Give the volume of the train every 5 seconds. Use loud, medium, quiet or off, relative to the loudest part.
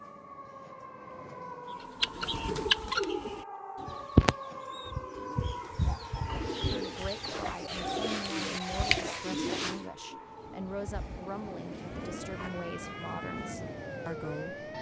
medium, off, loud.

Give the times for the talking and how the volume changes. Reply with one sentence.
The talking can be heard from 6.7 to 14.6 s, at a steady volume.